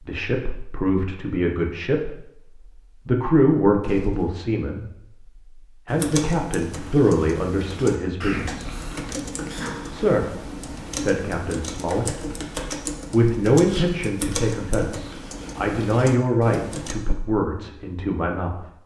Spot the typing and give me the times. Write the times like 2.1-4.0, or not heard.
5.8-16.9.